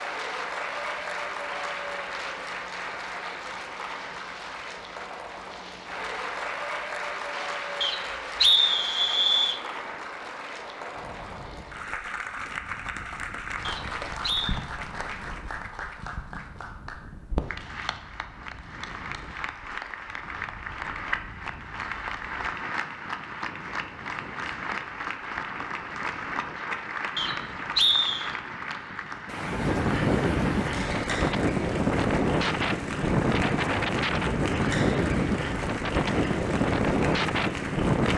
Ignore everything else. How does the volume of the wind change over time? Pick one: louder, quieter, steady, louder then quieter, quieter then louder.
louder.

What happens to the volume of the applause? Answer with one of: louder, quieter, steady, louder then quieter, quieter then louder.
steady.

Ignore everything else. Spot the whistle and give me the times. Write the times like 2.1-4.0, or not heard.
7.8-9.6, 13.6-14.6, 27.1-28.4.